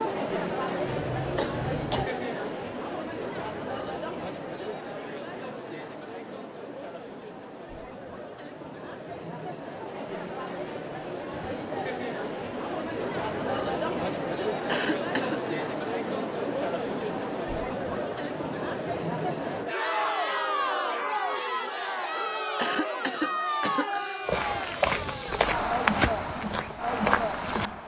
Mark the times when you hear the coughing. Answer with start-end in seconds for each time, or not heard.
0.8-2.1, 14.7-15.4, 22.6-24.2.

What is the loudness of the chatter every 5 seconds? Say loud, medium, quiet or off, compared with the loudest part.
loud, medium, loud, loud, loud, loud.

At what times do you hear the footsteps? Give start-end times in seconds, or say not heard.
24.2-27.7.